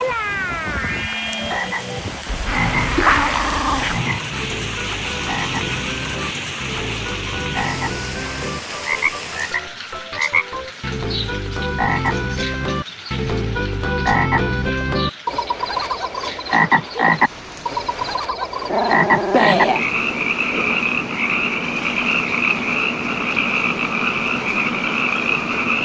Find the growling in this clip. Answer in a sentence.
You can hear the growling from 2.2 to 4.0 s and from 18.2 to 19.9 s.